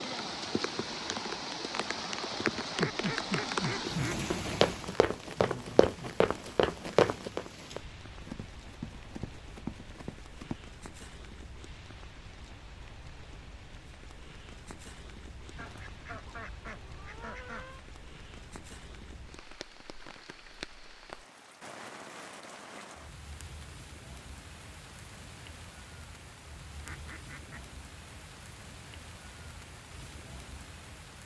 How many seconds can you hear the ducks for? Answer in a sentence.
The ducks can be heard for 5 seconds in total.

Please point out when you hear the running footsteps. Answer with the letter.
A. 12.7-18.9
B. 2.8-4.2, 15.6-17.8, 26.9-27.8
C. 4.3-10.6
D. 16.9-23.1
C.